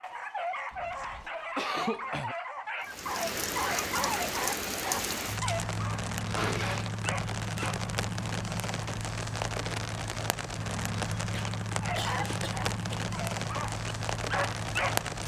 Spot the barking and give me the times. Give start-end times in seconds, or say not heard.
0.0-7.9, 11.8-15.1.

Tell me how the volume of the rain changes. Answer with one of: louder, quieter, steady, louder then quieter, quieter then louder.
steady.